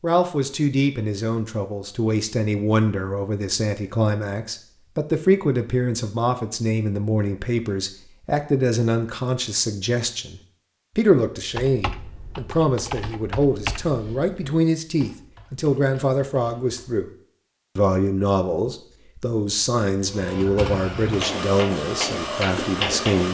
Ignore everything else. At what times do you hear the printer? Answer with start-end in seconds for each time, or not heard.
20.1-23.2.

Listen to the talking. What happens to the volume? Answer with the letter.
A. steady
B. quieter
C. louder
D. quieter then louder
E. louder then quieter
A.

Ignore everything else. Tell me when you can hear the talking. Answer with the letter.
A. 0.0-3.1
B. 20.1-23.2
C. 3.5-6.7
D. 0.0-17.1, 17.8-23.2
D.